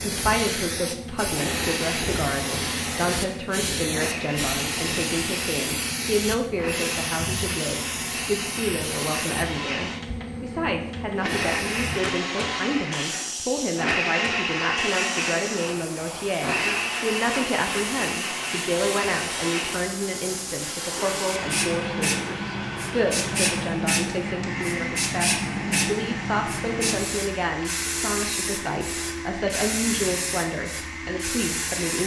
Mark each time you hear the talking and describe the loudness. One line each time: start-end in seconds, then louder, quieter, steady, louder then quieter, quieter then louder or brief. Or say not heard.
0.0-32.0 steady.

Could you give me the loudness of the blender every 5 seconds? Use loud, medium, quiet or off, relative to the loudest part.
medium, medium, loud, loud, medium, medium, medium.